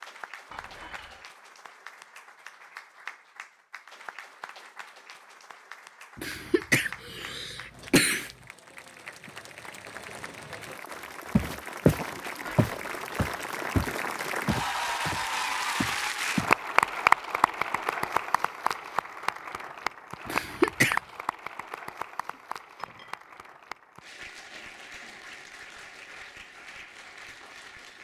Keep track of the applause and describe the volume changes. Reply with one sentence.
The loudness of the applause goes up, then down.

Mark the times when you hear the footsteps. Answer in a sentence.
The footsteps can be heard from 11.3 to 16.6 s.